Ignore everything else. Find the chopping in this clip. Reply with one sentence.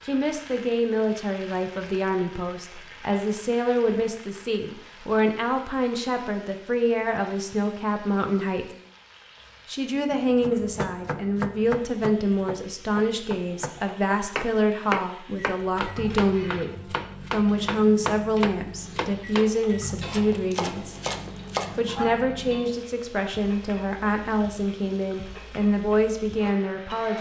The chopping can be heard from 10.3 to 21.9 s.